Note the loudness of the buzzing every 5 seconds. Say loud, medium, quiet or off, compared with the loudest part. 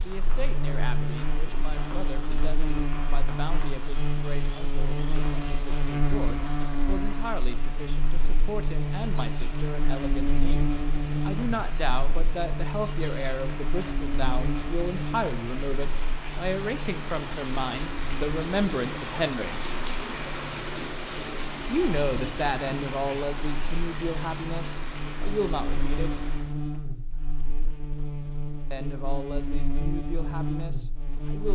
loud, loud, loud, medium, medium, loud, loud.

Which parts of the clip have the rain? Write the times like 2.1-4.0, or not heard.
0.0-26.6.